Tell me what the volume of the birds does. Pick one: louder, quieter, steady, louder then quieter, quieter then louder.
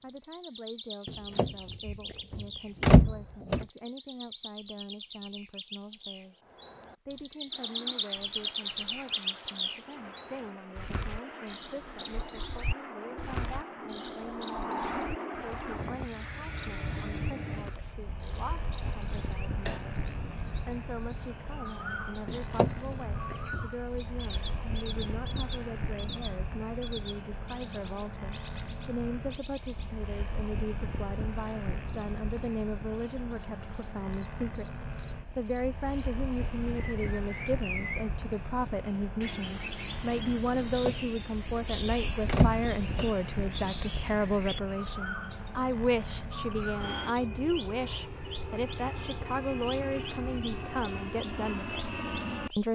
quieter.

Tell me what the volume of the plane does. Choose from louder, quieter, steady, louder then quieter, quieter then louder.
steady.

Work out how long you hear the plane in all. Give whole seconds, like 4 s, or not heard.
45 s.